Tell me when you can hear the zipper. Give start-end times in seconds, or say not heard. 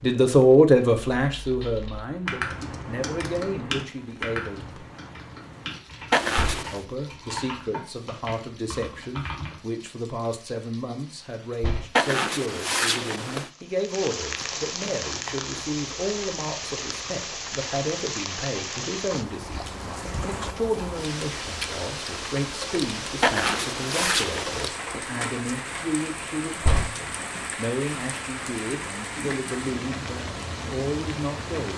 6.1-6.8, 11.9-13.5, 23.2-24.7.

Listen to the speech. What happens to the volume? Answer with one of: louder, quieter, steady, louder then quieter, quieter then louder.
quieter.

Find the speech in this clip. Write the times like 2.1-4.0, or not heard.
0.0-4.8, 6.7-31.7.